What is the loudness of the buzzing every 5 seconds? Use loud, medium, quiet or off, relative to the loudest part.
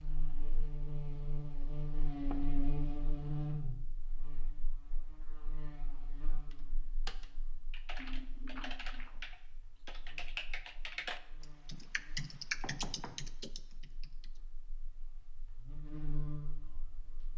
loud, quiet, quiet, medium.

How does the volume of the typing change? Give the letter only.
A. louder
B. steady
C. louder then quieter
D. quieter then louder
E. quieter
A.